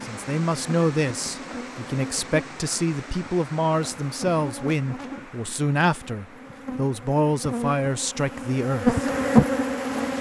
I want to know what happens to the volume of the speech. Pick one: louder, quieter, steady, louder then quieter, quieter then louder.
steady.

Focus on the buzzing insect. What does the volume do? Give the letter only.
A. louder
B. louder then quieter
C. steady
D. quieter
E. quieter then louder
A.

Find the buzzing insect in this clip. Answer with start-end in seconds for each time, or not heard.
0.0-10.1.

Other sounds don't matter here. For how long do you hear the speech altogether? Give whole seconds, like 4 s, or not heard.
9 s.